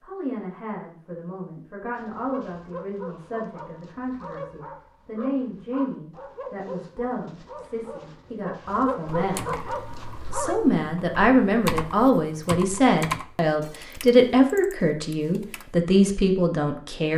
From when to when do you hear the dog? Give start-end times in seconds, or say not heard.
1.9-10.6.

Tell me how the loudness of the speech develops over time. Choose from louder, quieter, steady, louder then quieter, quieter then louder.
louder.